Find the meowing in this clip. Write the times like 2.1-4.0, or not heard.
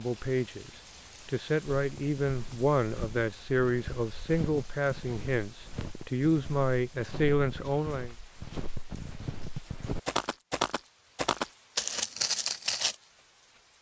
not heard.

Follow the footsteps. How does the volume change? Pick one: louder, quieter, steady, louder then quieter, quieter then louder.
louder.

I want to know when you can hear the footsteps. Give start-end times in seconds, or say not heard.
1.8-12.9.